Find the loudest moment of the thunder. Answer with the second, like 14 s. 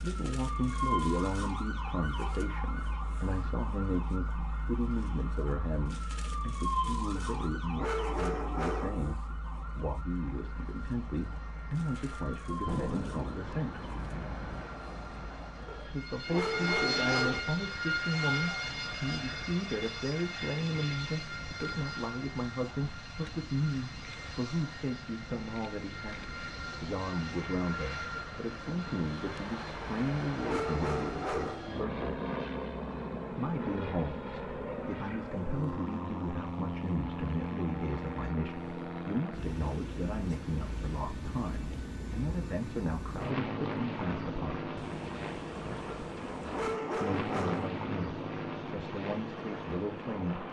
13 s.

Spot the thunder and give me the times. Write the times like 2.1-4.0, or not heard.
12.7-14.7, 44.8-46.8.